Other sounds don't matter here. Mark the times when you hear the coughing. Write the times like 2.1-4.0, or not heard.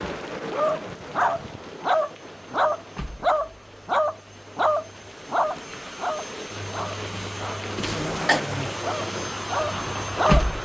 7.8-8.4.